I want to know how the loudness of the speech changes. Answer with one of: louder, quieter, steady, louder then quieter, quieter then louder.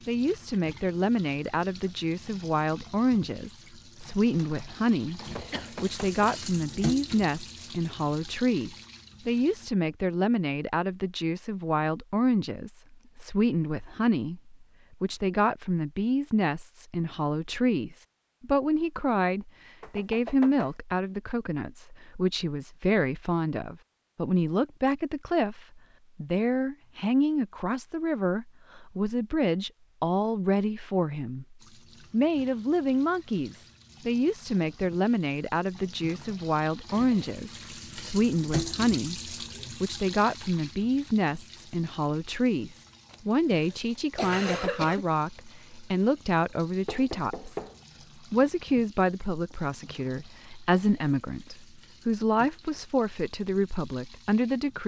steady.